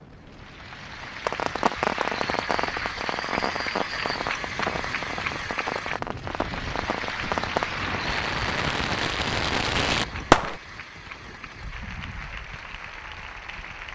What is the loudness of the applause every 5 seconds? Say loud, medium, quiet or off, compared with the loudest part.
loud, loud, medium.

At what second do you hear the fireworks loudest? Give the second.
10 s.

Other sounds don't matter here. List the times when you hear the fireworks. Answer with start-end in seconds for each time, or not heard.
1.2-10.6.